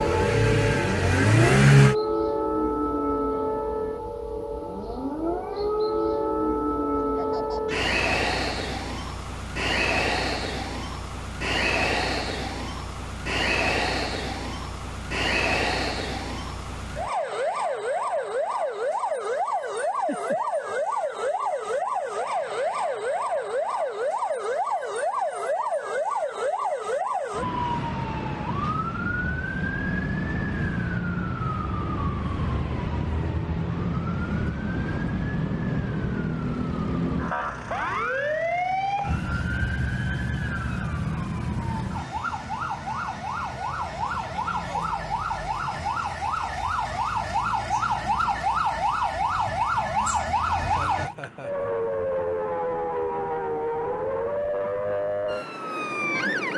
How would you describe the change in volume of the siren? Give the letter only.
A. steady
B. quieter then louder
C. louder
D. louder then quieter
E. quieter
A.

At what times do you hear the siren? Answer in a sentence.
The siren can be heard from 0.0 to 56.5 s.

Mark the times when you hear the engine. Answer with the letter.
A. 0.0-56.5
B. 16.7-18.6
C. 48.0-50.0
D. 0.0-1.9
D.